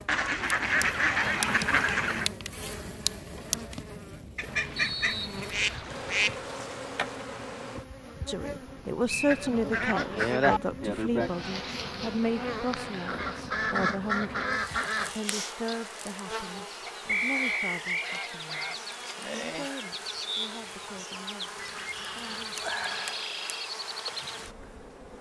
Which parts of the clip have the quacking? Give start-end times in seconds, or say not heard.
0.1-2.3, 4.3-6.5, 9.2-10.6, 13.1-15.3, 16.9-18.8, 21.6-23.2.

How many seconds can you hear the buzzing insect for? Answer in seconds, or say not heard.
25 s.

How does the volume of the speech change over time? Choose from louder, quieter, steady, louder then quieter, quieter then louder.
quieter.